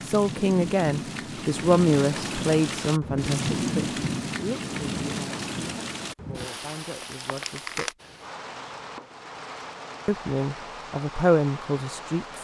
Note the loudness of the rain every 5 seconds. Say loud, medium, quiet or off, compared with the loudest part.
loud, medium, medium.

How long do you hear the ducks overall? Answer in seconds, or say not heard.
not heard.